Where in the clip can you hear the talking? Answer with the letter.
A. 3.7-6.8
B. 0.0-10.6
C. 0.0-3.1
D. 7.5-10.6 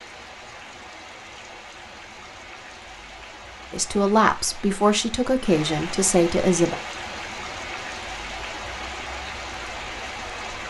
A.